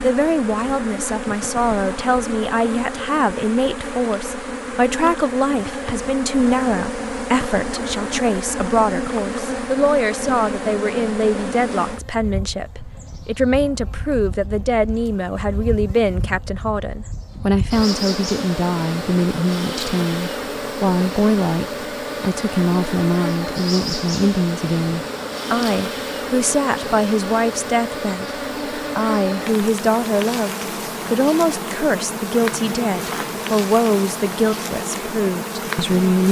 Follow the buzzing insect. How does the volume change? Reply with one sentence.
The loudness of the buzzing insect stays about the same.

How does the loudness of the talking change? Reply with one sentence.
The volume of the talking stays about the same.